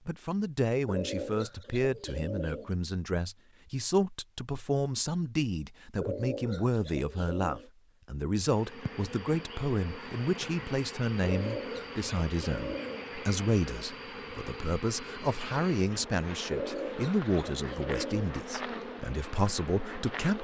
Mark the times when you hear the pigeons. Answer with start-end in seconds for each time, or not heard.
0.8-2.8, 6.0-7.7, 11.2-13.1, 16.5-18.4.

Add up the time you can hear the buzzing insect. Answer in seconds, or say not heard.
12 s.